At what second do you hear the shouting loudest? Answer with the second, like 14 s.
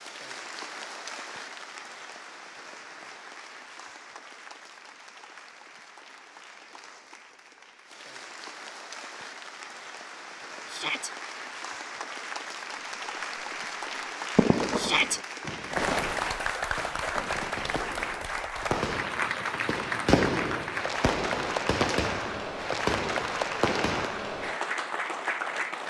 15 s.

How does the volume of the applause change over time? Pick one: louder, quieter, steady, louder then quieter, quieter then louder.
louder.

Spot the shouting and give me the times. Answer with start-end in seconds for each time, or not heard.
10.7-11.1, 14.8-15.2.